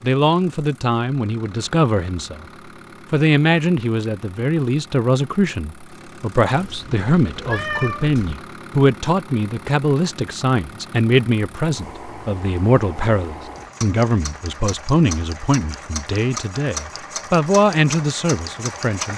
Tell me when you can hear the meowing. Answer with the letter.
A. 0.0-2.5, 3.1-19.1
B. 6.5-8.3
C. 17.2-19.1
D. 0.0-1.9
B.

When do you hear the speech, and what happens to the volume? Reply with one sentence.
You can hear the speech briefly from 0.0 to 2.5 s; and from 3.1 to 19.1 s, at a steady volume.